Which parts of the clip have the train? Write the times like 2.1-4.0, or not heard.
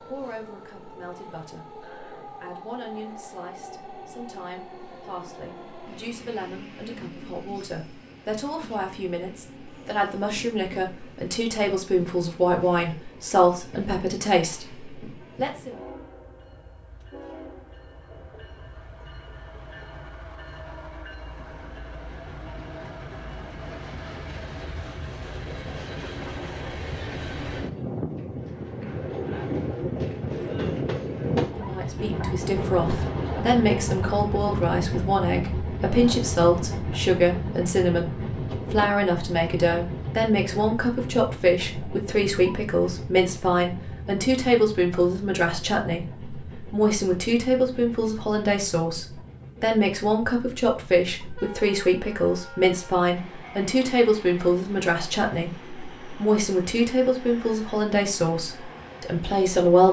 0.0-59.8.